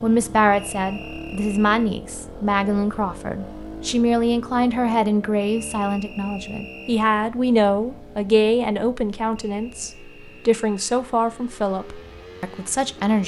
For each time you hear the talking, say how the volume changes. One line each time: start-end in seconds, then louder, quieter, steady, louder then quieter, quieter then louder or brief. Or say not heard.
0.0-13.2 steady.